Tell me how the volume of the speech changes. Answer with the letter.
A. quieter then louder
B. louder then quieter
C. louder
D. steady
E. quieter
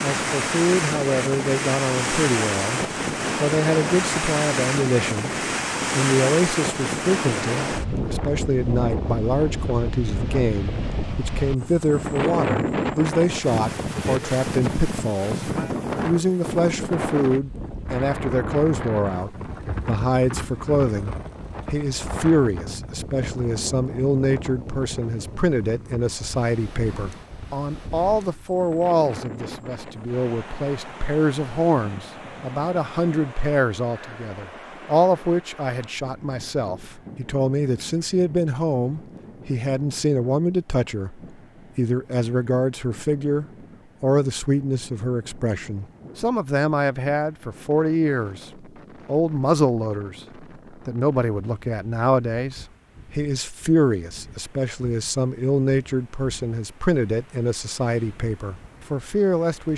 D.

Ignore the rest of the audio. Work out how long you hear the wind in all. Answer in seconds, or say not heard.
60 s.